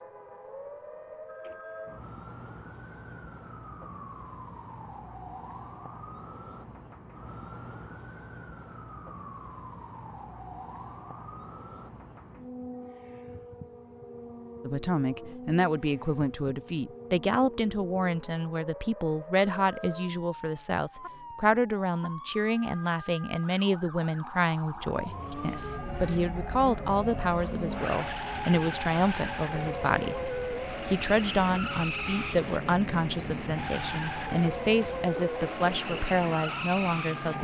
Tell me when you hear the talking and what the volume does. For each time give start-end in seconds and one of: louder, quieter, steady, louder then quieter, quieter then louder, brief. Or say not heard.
14.6-37.3 steady.